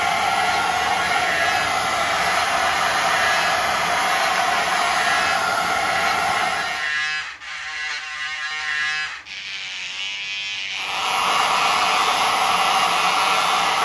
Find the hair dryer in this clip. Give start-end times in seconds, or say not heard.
0.0-6.9, 10.8-13.8.